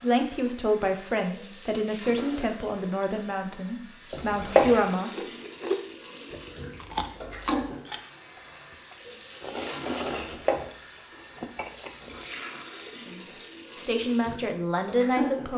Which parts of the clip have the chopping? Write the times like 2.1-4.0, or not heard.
4.1-4.8, 10.1-10.7.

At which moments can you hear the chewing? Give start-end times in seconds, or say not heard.
5.0-12.2.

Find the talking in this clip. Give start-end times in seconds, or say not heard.
0.0-5.1, 13.1-15.5.